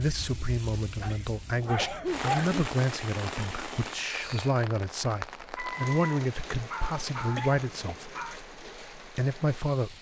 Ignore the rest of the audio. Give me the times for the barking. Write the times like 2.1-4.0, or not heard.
0.8-2.5, 5.5-8.3.